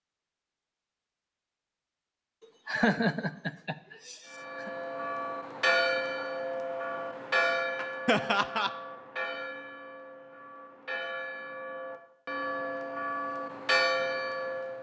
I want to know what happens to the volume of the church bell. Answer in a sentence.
The volume of the church bell goes down, then up.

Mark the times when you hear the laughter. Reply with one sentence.
You can hear the laughter from 2.6 to 4.7 s and from 8.1 to 8.7 s.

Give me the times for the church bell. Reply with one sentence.
You can hear the church bell from 4.3 to 14.7 s.